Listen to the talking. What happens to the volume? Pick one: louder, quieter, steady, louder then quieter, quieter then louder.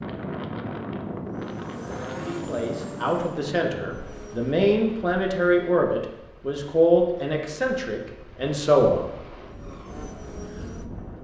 louder then quieter.